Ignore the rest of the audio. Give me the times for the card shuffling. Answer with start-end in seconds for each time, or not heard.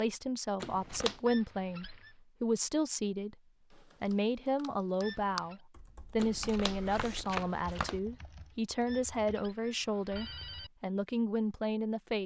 0.6-1.2, 6.2-8.0.